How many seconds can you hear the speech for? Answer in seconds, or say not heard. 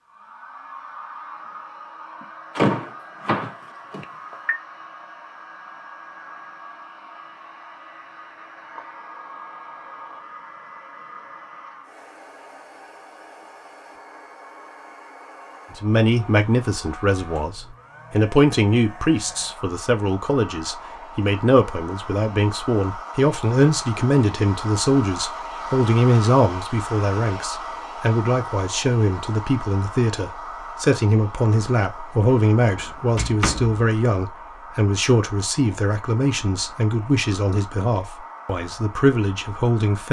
24 s.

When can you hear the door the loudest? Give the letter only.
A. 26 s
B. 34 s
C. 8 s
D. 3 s
D.